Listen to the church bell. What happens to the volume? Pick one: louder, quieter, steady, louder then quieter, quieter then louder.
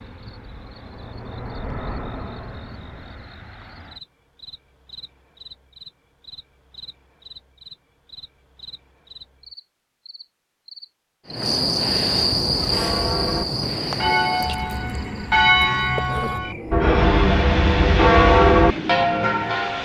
louder.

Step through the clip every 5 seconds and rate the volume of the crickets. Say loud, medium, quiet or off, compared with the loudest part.
quiet, quiet, loud, medium.